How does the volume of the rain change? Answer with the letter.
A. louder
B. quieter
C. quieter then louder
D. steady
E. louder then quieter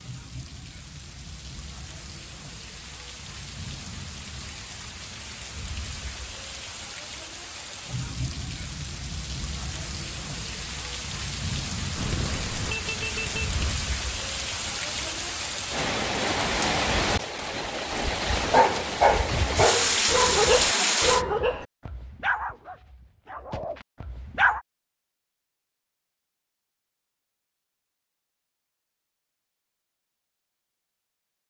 A.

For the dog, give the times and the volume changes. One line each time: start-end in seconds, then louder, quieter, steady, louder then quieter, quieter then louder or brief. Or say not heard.
18.4-24.6 quieter.